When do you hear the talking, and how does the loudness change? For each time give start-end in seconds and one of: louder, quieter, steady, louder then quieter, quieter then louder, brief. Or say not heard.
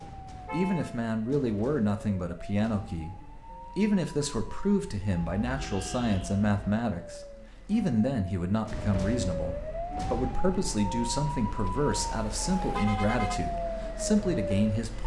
0.5-15.0 steady.